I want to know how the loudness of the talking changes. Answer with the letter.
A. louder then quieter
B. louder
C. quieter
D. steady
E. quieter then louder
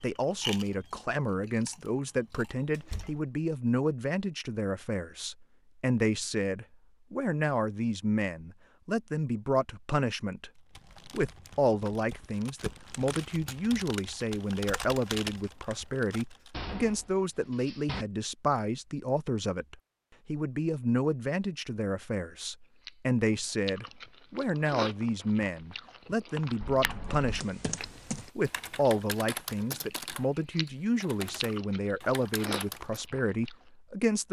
D.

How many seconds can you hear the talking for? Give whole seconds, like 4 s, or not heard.
34 s.